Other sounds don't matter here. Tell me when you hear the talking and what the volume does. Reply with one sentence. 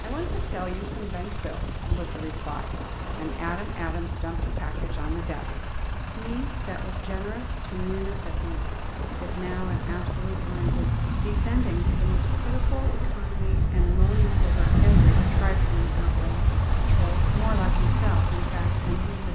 You can hear the talking from 0.0 to 19.2 s, at a steady volume.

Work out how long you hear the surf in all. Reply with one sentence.
You can hear the surf for 19 seconds altogether.